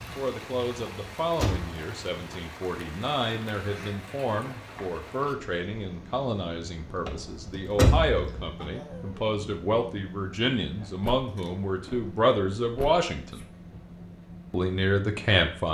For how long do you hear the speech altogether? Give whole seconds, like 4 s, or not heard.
15 s.